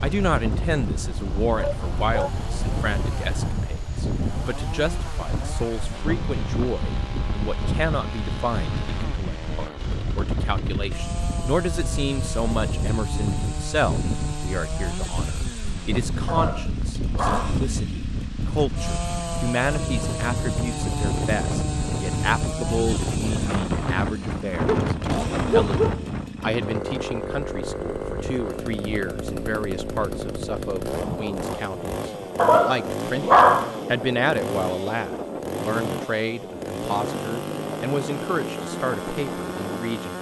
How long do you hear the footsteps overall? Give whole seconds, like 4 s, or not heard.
not heard.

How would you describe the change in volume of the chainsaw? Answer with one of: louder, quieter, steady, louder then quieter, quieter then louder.
louder.